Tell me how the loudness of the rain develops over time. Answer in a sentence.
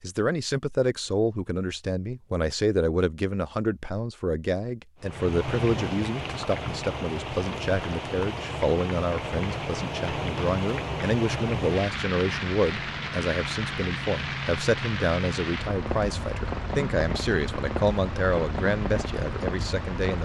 The loudness of the rain stays about the same.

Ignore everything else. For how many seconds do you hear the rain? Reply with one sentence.
The rain can be heard for 15 seconds in total.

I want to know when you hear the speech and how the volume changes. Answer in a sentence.
The speech can be heard from 0.0 to 20.2 s, at a steady volume.